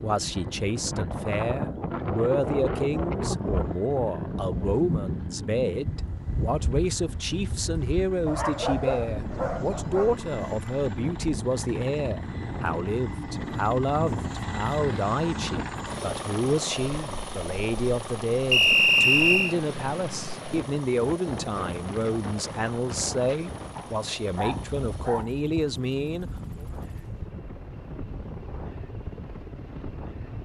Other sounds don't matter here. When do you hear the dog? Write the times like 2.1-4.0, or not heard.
8.2-10.2, 23.8-25.4.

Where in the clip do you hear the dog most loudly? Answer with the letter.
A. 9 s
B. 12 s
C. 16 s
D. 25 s
A.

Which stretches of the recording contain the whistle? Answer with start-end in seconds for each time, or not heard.
18.5-19.6.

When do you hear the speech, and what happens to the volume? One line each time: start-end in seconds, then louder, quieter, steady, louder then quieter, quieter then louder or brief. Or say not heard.
0.0-26.6 steady.